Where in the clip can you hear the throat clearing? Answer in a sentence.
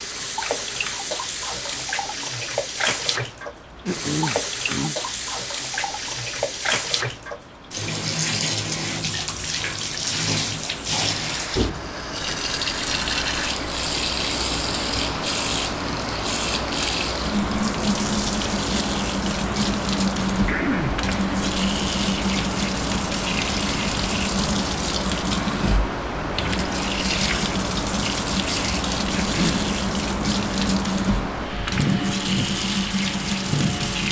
You can hear the throat clearing from 3.9 to 5.0 s, from 20.4 to 21.0 s and from 29.1 to 29.8 s.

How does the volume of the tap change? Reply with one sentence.
The volume of the tap stays about the same.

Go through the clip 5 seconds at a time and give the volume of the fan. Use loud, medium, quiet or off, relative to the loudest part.
quiet, quiet, medium, loud, loud, loud, loud.